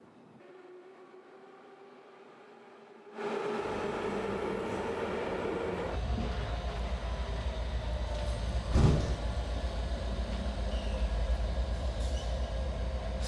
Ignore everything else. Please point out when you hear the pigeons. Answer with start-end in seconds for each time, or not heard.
3.6-6.9.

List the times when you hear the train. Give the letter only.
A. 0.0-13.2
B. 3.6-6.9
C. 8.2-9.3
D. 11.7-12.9
A.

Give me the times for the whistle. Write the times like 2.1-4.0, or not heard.
not heard.